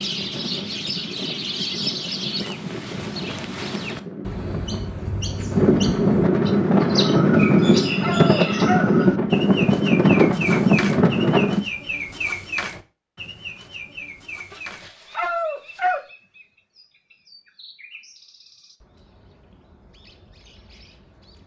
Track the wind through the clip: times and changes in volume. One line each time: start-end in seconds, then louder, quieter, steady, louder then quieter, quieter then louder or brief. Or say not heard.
0.0-11.6 louder.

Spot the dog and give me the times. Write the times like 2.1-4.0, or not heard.
7.3-8.8, 14.5-16.0.